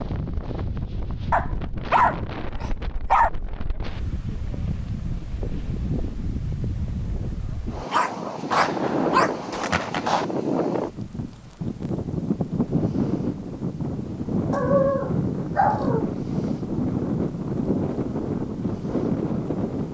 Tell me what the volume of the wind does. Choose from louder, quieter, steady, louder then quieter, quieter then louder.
louder.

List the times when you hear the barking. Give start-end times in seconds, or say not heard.
1.3-3.3, 7.9-9.3, 14.5-16.1.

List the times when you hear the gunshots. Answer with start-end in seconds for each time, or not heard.
8.5-10.2.